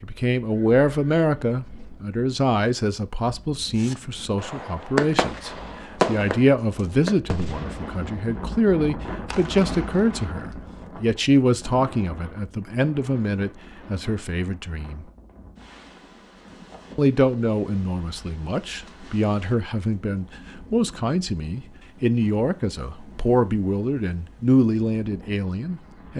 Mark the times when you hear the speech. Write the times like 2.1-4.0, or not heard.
0.0-15.1, 16.9-26.1.